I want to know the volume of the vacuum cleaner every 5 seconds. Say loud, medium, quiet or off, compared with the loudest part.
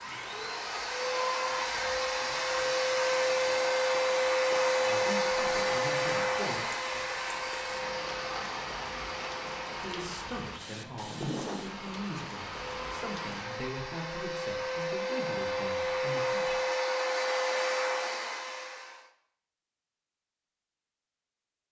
loud, loud, medium, loud, off.